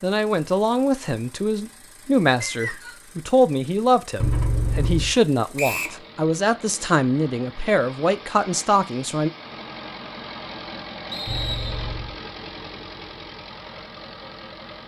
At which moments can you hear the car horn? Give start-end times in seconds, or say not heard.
4.2-5.2, 11.2-12.2.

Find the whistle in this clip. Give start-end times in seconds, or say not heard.
2.4-3.0, 5.5-6.0, 11.1-11.9.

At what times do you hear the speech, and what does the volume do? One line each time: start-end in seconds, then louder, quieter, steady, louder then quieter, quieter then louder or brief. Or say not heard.
0.0-9.3 steady.